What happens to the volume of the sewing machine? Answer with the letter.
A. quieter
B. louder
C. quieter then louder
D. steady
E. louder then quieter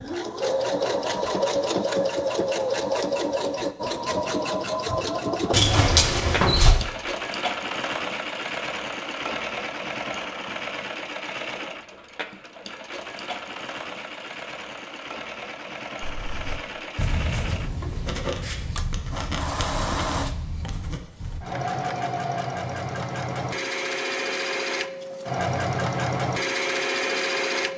C.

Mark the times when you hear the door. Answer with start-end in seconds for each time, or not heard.
5.5-6.8.